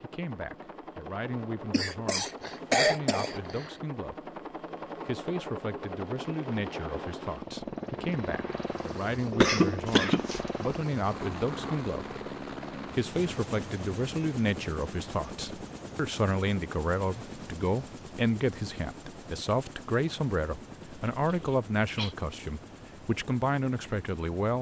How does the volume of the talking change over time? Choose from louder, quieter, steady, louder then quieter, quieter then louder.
louder.